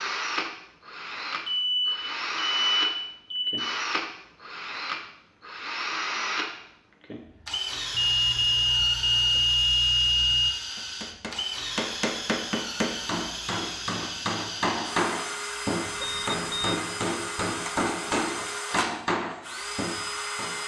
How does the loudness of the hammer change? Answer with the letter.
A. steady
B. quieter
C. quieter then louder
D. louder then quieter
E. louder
A.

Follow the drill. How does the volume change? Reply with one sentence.
The volume of the drill stays about the same.